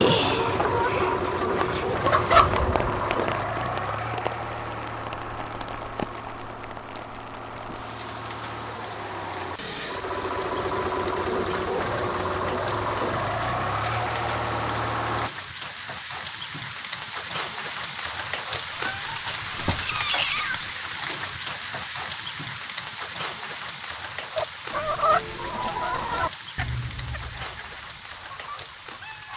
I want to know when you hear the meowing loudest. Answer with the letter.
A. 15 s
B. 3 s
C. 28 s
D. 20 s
D.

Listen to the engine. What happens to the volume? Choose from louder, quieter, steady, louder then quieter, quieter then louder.
quieter then louder.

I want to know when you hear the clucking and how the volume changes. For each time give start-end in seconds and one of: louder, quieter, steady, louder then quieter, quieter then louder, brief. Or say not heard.
0.0-2.7 brief
24.2-29.3 quieter.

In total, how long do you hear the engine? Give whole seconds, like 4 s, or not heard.
15 s.